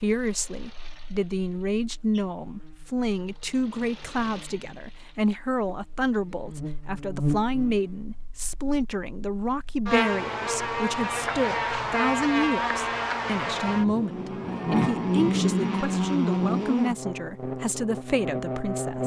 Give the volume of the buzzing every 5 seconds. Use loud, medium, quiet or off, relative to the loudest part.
quiet, medium, loud, loud.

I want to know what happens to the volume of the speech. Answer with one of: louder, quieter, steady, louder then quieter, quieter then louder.
steady.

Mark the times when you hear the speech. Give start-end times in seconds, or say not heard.
0.0-19.0.